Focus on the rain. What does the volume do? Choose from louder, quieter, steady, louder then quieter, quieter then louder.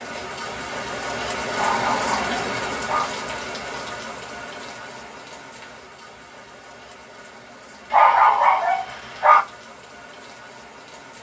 quieter.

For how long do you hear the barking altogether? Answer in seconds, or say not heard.
3 s.